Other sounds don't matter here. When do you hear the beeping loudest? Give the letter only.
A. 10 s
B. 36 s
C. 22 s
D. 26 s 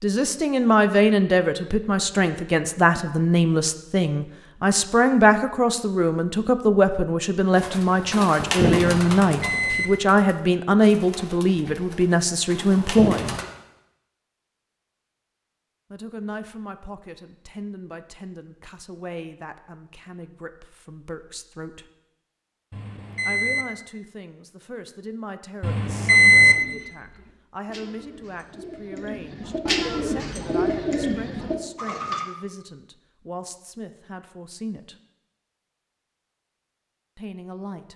D.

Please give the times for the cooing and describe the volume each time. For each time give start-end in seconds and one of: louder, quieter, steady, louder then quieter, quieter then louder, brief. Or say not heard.
7.5-13.4 quieter then louder
26.4-32.2 louder.